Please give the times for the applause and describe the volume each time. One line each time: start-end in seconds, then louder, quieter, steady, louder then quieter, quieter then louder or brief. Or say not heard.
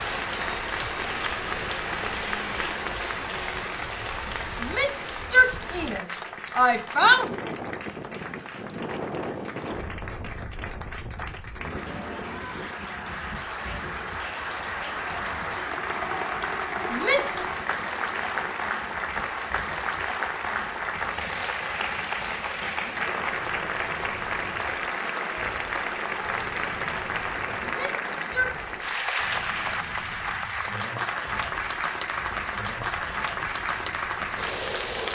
0.0-35.1 quieter then louder.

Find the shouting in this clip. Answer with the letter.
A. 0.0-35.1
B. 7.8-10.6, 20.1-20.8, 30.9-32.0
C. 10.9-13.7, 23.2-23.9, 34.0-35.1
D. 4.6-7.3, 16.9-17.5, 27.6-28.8
D.